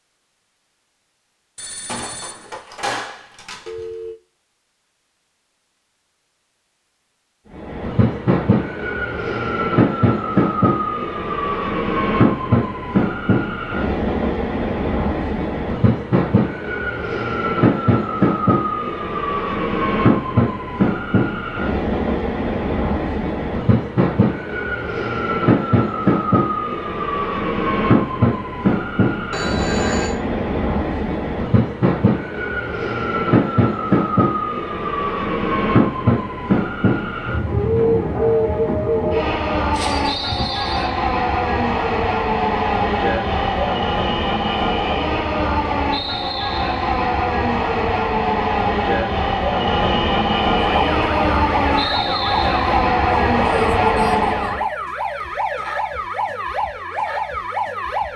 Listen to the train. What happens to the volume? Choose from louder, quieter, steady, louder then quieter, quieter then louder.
steady.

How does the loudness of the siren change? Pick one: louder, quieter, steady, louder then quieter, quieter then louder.
steady.